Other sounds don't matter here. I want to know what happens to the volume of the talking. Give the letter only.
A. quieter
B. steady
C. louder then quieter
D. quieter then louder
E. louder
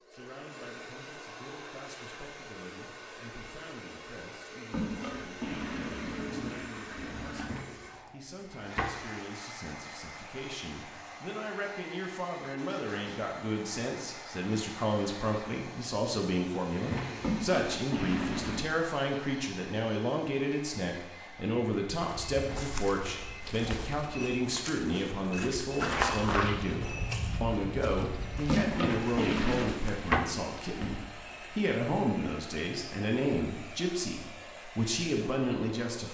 E.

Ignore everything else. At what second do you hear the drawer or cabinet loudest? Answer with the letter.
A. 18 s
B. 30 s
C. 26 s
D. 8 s
B.